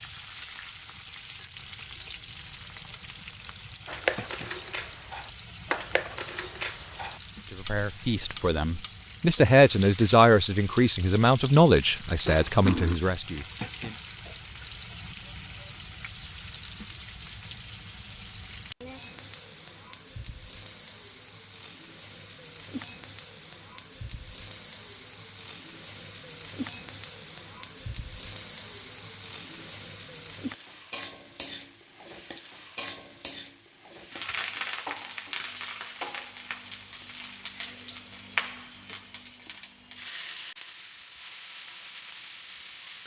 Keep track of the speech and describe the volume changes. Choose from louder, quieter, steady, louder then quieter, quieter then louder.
louder then quieter.